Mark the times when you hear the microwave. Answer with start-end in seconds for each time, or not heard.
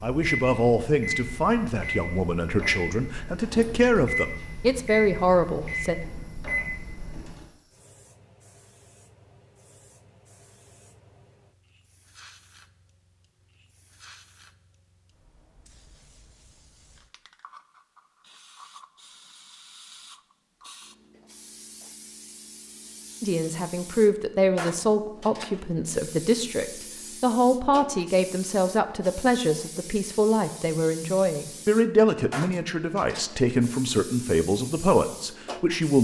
0.1-7.5.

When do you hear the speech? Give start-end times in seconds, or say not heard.
0.0-6.0, 23.2-35.9.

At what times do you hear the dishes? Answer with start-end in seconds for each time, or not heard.
not heard.